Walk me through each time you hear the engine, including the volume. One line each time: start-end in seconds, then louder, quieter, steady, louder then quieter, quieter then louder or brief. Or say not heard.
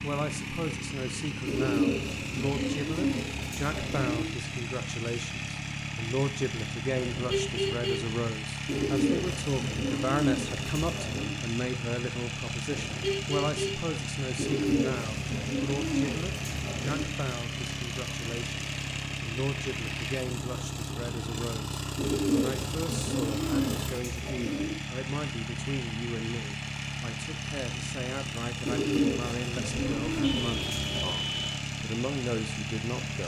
0.0-33.2 steady.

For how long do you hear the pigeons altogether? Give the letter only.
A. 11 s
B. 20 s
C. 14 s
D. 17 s
C.